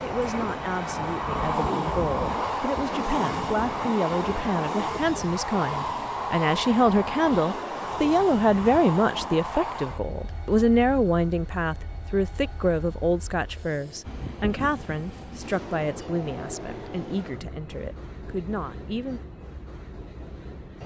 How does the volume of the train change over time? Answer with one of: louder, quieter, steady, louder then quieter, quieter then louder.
quieter.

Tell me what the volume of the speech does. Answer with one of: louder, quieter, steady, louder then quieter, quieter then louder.
louder then quieter.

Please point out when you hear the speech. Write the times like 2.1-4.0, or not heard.
0.0-19.2.